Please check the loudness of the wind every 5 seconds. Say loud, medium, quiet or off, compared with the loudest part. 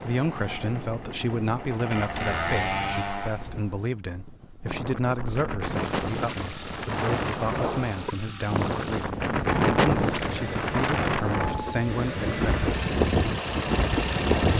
quiet, loud, loud.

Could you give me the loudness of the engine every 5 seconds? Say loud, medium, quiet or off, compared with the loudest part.
loud, medium, loud.